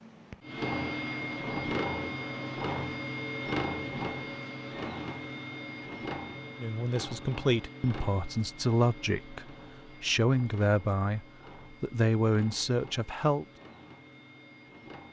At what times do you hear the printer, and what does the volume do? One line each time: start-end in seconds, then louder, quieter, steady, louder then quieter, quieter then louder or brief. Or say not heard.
0.0-15.0 quieter.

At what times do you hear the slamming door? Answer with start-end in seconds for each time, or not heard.
not heard.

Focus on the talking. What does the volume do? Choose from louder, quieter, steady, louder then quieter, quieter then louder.
steady.